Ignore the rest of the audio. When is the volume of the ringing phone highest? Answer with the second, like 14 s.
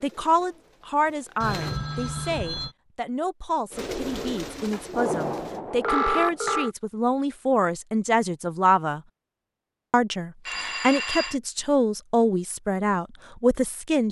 6 s.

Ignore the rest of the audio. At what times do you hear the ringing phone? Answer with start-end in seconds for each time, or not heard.
1.4-2.7, 4.9-6.7, 10.4-11.3.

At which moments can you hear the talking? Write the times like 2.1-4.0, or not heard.
0.0-9.0, 9.9-14.0.